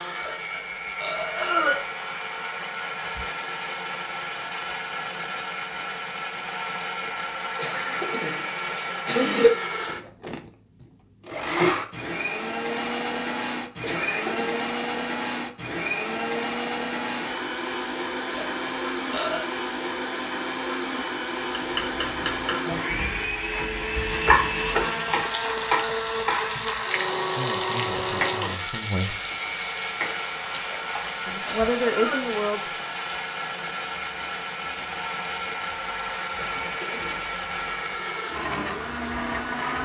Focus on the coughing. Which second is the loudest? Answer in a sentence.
The loudest moment of the coughing is at 9 seconds.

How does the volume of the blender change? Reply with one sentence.
The volume of the blender stays about the same.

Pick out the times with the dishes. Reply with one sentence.
The dishes can't be heard in this clip.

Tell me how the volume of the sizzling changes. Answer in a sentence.
The volume of the sizzling goes down.